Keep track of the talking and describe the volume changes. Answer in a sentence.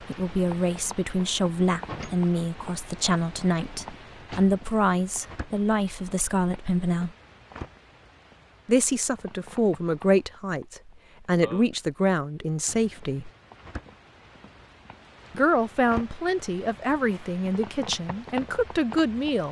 The loudness of the talking stays about the same.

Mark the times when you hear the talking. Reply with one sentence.
You can hear the talking from 0.1 to 7.1 s, from 8.7 to 13.3 s and from 15.3 to 19.4 s.